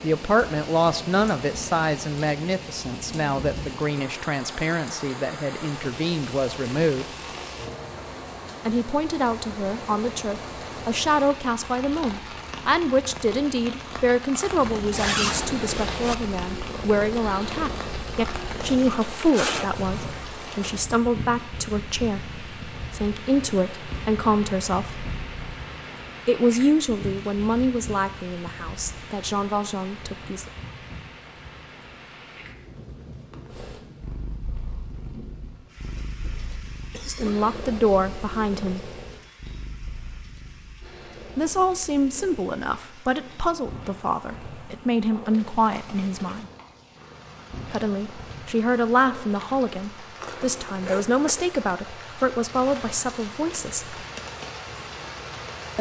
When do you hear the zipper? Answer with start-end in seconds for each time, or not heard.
14.9-16.1, 18.7-19.7, 50.2-51.5.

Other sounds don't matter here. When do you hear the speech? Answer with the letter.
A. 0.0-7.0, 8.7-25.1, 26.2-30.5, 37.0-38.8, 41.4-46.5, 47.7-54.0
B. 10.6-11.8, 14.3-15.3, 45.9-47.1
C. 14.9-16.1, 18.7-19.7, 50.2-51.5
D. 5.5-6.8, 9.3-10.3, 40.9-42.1
A.